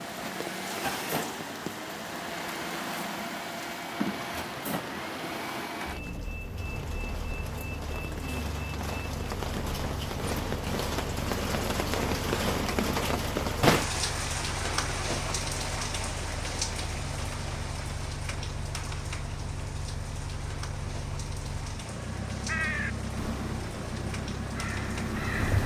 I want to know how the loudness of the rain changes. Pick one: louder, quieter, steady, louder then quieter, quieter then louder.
louder then quieter.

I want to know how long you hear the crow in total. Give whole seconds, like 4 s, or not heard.
3 s.